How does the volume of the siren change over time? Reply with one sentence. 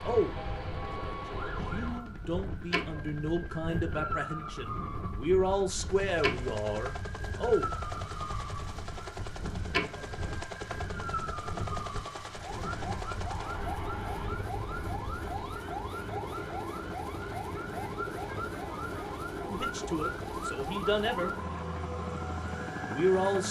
The loudness of the siren stays about the same.